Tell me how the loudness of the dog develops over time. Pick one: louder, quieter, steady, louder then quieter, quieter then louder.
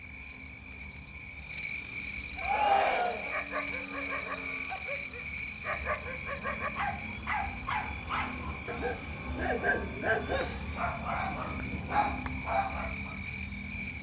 louder.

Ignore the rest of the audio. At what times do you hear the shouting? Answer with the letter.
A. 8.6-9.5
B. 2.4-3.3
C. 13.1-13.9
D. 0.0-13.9
B.